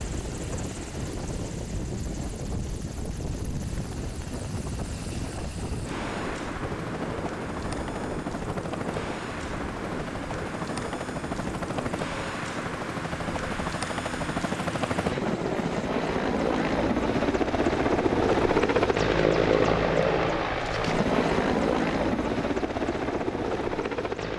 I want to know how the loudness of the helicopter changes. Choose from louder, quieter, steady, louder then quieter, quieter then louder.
louder.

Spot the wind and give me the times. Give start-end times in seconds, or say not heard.
0.0-15.7.